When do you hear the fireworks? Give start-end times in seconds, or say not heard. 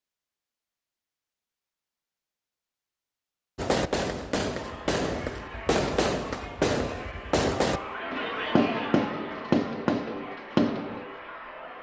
3.5-11.2.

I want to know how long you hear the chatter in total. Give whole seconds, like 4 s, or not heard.
7 s.